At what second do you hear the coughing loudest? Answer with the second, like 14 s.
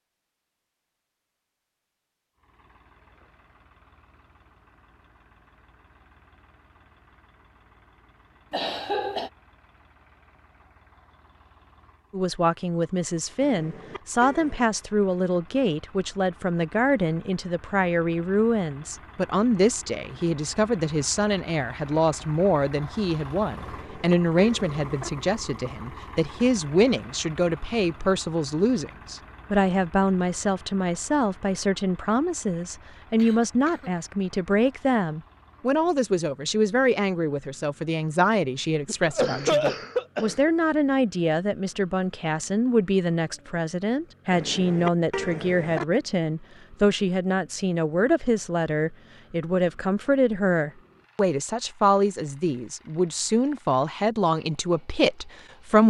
40 s.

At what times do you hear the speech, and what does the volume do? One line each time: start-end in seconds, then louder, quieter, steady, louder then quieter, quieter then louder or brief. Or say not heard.
12.1-55.8 steady.